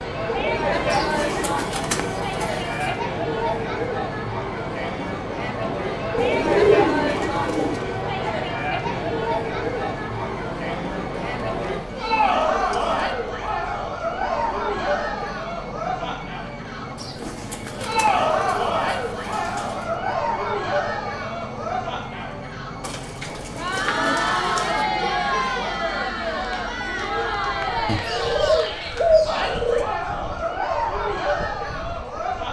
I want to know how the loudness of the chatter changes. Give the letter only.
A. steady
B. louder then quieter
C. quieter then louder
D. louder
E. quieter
A.